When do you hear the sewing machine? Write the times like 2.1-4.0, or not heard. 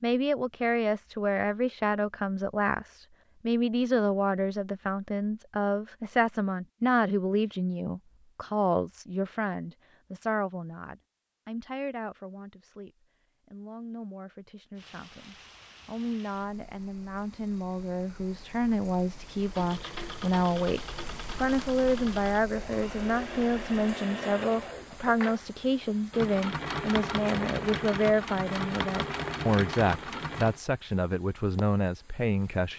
19.4-30.6.